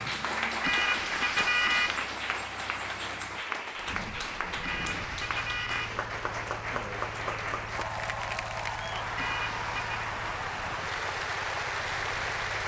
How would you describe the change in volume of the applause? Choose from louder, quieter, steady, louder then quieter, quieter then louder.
steady.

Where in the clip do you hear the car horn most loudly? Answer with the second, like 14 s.
2 s.